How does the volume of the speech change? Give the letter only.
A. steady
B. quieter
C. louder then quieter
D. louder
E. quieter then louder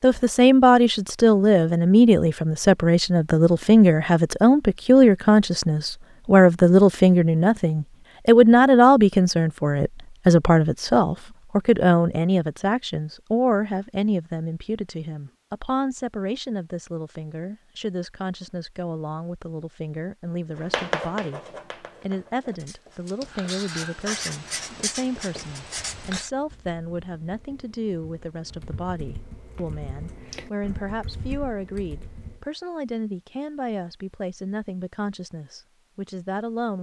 B.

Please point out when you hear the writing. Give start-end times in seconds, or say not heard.
20.6-26.3.